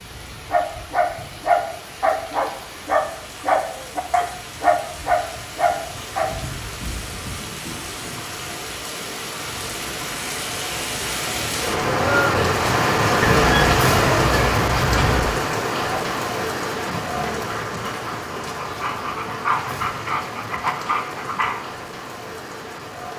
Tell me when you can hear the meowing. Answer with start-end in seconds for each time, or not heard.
not heard.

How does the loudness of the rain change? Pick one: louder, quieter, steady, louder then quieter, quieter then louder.
louder then quieter.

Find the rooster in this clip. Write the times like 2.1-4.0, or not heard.
13.2-15.2.